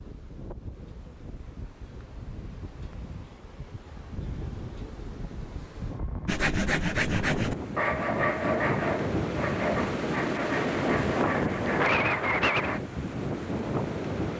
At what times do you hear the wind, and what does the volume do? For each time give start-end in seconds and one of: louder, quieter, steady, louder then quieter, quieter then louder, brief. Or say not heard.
0.0-14.3 louder.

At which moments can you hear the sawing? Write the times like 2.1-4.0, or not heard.
6.2-12.8.